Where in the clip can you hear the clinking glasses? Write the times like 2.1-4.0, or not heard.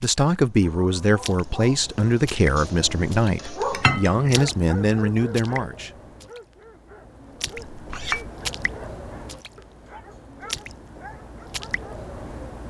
3.7-4.4, 7.7-8.3.